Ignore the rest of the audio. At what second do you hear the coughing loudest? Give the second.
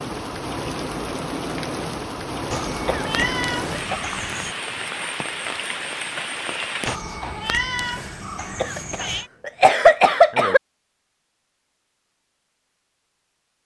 10 s.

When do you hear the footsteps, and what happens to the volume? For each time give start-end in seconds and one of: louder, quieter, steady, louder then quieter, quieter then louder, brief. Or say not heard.
not heard.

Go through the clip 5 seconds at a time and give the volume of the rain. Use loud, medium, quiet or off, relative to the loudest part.
loud, loud, off.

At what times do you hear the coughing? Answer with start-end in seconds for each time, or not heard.
2.9-4.0, 8.6-10.6.